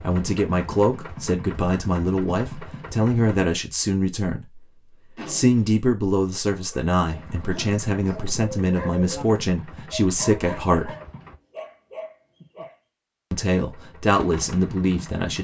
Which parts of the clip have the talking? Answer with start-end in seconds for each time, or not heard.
0.0-4.7, 5.2-10.9, 13.3-15.4.